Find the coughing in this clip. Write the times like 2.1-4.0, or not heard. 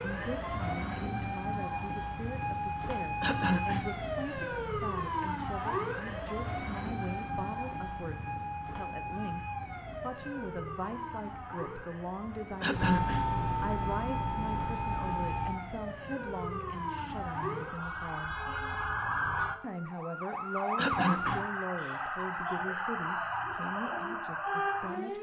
3.2-3.9, 12.6-13.3, 20.8-21.4.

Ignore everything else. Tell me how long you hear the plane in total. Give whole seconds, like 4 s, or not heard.
3 s.